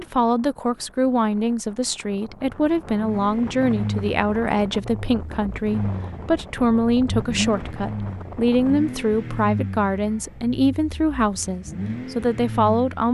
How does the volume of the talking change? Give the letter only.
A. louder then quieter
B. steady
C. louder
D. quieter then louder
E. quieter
B.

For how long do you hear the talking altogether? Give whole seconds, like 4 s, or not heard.
13 s.